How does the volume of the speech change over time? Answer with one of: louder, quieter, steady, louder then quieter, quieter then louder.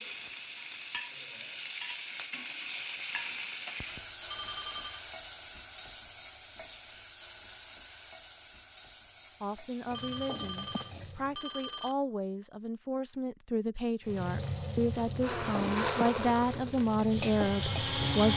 louder.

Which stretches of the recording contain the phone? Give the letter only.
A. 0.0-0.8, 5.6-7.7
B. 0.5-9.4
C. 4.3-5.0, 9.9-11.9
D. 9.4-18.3
C.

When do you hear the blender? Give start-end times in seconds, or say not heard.
15.2-18.3.